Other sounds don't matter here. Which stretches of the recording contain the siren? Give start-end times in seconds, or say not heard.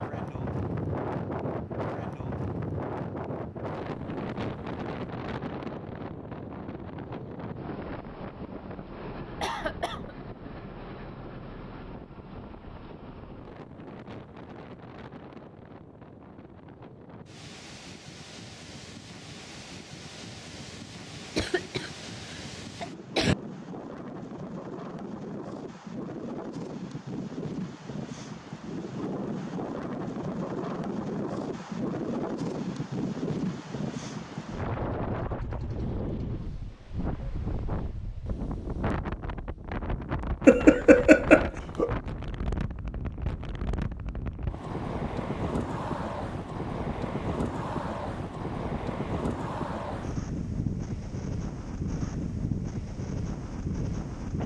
not heard.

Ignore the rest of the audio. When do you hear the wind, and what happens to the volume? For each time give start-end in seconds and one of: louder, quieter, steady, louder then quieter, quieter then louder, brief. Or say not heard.
0.0-54.4 quieter then louder.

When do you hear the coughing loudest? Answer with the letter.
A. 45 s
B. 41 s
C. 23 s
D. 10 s
B.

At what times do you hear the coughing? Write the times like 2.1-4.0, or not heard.
9.4-10.2, 21.4-23.4, 40.5-42.0.